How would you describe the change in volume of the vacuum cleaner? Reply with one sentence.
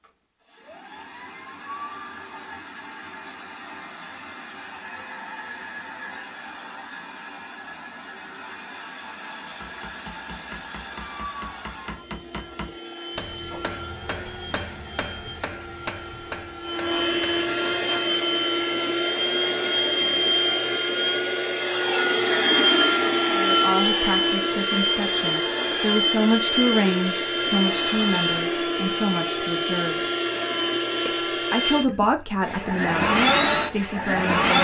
The volume of the vacuum cleaner goes up.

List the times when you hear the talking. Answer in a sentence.
The talking can be heard from 23.3 to 30.0 s and from 31.1 to 34.5 s.